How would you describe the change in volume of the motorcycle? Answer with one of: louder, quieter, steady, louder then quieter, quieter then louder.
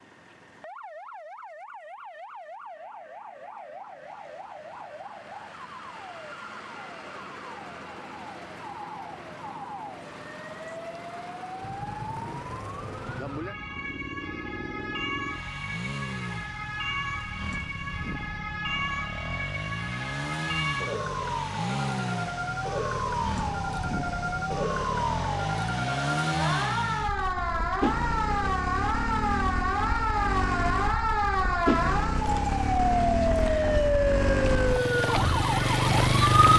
louder.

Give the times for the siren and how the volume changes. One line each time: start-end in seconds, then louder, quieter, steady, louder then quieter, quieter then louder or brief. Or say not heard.
0.0-36.5 louder.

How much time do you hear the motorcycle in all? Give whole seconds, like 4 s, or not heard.
25 s.